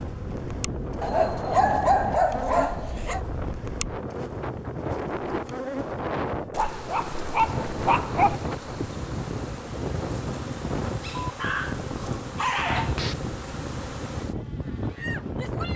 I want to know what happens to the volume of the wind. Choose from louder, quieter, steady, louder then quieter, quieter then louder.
steady.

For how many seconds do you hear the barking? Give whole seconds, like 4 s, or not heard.
6 s.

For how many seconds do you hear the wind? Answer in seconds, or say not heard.
16 s.